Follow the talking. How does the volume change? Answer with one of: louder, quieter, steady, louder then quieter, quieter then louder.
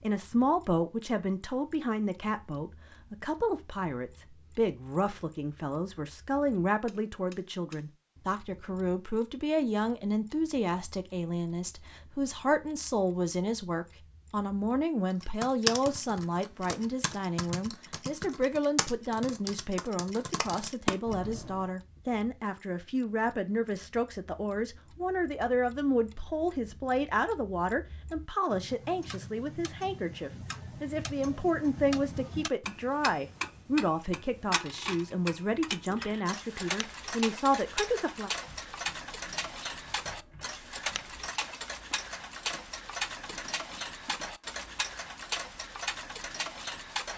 steady.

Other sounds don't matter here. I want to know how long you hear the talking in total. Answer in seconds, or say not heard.
38 s.